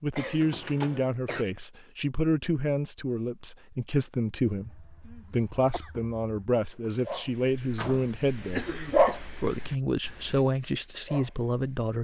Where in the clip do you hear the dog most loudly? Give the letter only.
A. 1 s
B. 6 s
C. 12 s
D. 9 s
D.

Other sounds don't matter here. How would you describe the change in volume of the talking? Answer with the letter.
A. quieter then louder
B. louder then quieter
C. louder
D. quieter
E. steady
E.